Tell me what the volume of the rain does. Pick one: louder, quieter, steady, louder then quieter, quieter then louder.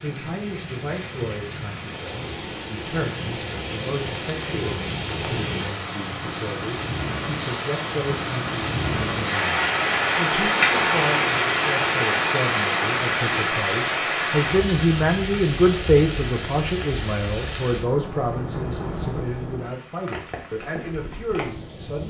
louder then quieter.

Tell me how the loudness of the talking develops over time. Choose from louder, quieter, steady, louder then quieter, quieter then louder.
louder then quieter.